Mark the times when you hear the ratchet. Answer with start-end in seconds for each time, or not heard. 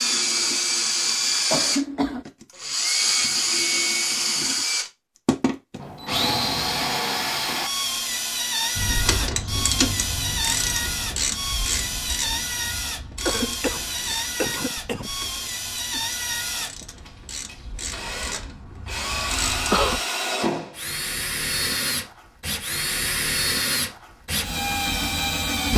8.8-20.0.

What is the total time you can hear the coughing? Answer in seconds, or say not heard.
3 s.